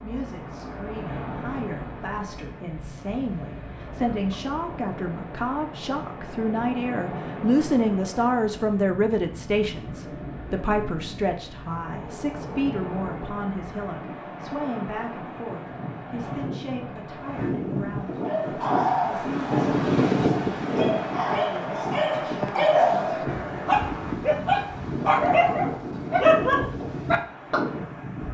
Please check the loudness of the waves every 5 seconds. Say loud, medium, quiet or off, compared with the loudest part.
medium, medium, medium, loud, loud, loud.